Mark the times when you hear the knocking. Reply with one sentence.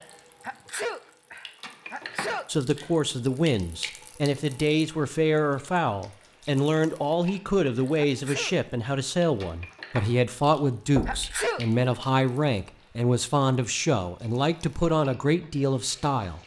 The knocking can be heard from 10.9 to 11.4 s.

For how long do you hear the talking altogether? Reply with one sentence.
You can hear the talking for 14 seconds altogether.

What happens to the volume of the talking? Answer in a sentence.
The loudness of the talking stays about the same.